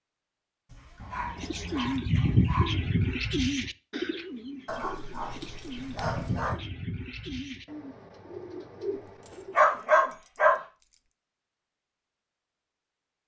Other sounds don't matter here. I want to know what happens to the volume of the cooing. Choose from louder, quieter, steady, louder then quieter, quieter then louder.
quieter.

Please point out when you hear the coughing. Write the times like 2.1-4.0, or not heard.
not heard.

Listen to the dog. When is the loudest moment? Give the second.
10 s.